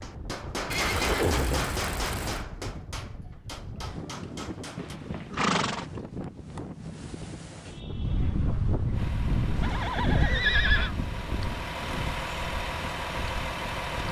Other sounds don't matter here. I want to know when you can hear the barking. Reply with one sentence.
You can't hear the barking here.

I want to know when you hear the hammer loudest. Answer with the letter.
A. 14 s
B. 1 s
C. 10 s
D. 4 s
B.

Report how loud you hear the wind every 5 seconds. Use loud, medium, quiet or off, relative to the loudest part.
medium, loud, loud.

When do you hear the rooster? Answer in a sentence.
The rooster can't be heard in this clip.